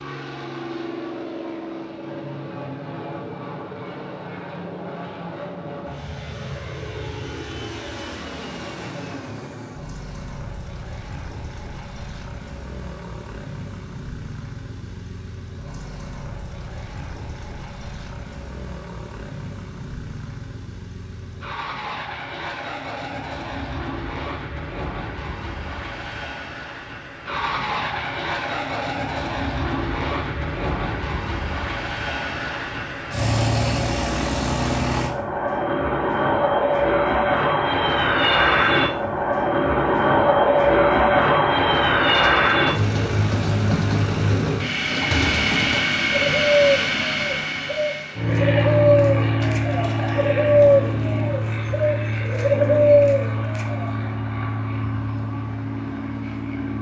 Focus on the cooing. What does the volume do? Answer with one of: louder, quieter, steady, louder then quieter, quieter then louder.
louder.